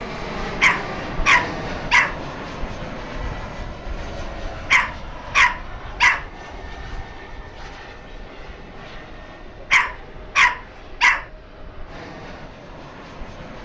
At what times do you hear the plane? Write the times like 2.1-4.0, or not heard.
0.0-13.6.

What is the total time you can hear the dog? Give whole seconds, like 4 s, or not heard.
5 s.